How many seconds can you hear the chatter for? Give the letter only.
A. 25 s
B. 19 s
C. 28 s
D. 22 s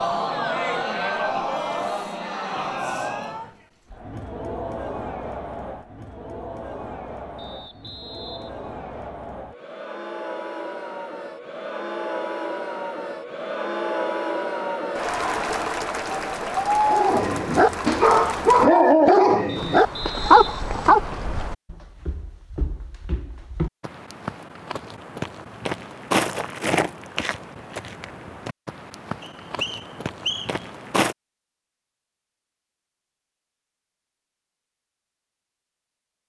B.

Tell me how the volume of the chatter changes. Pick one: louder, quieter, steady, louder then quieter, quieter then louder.
quieter then louder.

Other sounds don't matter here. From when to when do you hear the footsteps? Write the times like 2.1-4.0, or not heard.
19.6-31.1.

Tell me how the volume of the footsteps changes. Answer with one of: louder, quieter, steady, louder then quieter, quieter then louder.
louder then quieter.